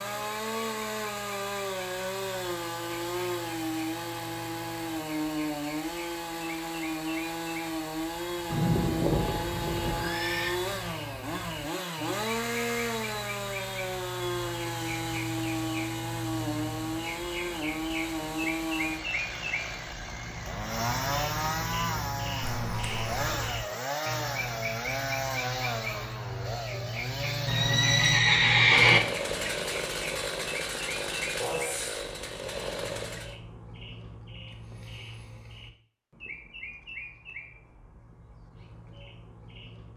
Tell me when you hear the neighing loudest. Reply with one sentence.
The loudest moment of the neighing is at 29 seconds.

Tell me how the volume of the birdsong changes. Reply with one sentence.
The volume of the birdsong goes up, then down.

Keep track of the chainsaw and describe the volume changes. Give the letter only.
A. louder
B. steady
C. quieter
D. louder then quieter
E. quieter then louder
B.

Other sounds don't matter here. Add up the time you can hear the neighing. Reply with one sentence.
The neighing can be heard for 5 seconds in total.